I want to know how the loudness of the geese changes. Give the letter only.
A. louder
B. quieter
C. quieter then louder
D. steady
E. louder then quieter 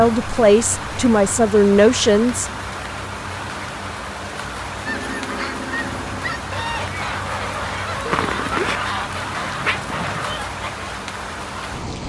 D.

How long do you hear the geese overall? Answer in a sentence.
You can hear the geese for 6 seconds altogether.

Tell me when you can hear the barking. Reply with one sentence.
You can hear the barking from 8.1 to 9.8 s.